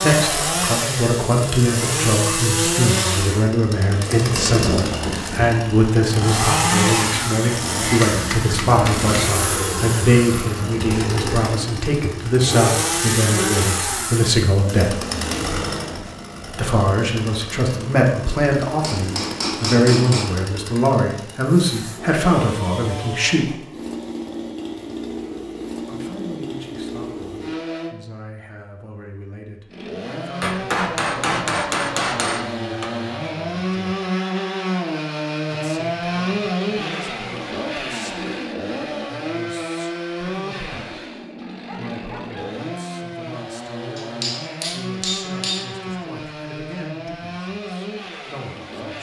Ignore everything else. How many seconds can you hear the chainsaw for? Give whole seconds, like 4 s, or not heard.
47 s.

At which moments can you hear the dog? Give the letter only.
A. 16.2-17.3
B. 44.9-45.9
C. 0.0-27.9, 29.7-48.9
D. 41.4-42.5
D.